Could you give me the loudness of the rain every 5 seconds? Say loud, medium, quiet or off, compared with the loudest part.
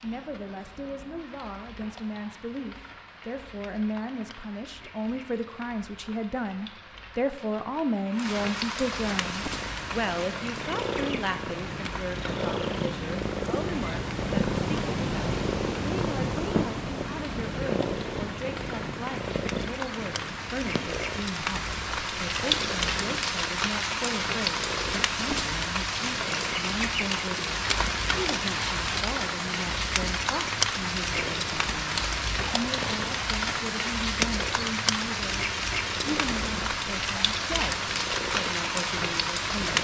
quiet, medium, medium, medium, loud, loud, loud, loud.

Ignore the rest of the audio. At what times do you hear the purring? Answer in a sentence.
You can hear the purring from 8.9 to 39.7 s.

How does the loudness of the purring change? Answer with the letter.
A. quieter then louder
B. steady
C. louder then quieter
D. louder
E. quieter
E.